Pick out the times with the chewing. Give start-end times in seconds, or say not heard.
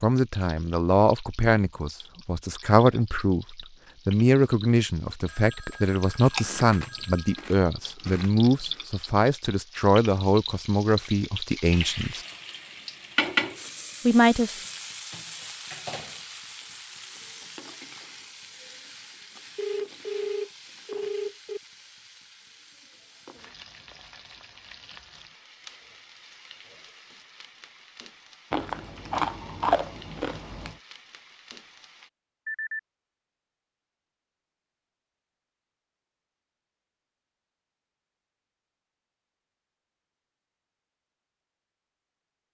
6.1-8.8, 28.5-30.8.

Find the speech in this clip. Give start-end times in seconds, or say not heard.
0.0-12.2, 14.1-14.6.